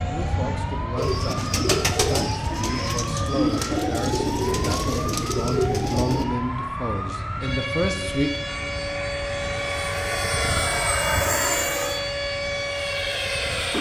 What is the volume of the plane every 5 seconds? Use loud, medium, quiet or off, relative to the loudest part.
medium, medium, loud.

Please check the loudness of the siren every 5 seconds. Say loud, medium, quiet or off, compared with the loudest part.
medium, loud, loud.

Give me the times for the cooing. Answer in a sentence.
You can hear the cooing from 0.9 to 6.2 s.